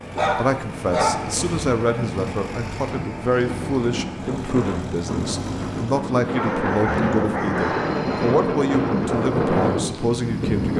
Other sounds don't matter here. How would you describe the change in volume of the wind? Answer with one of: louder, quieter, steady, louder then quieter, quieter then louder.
louder.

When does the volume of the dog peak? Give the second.
1 s.